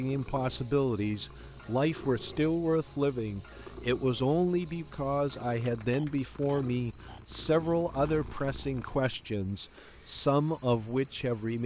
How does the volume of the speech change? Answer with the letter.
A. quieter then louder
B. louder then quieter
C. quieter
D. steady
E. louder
D.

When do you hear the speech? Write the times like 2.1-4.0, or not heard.
0.0-11.6.